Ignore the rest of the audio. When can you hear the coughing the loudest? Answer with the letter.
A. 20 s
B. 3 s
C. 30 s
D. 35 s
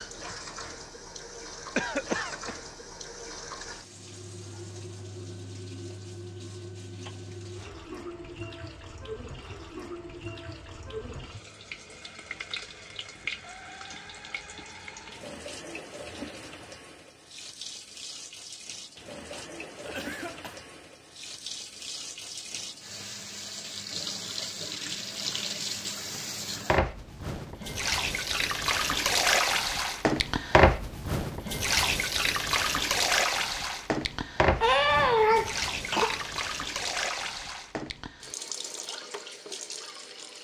D.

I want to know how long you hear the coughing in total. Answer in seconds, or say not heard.
4 s.